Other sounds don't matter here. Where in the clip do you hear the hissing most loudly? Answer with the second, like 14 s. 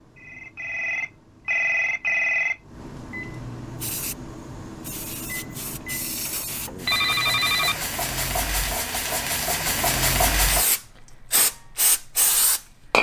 10 s.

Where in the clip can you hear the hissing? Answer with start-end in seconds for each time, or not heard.
3.8-12.9.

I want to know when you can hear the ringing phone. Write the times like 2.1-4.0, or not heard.
0.1-2.6, 6.8-7.8.